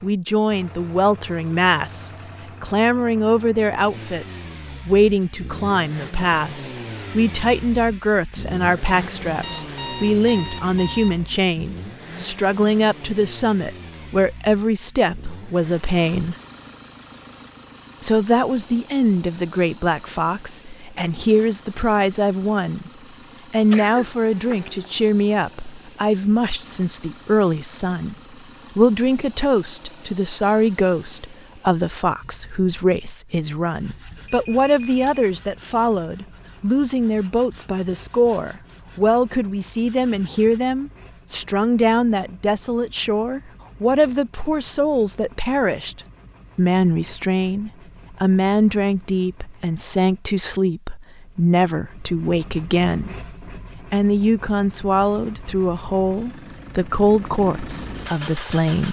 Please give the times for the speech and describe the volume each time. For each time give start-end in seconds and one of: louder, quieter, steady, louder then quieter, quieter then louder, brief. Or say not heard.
0.0-16.4 steady
18.0-22.9 quieter then louder
23.5-28.1 steady
28.8-58.8 steady.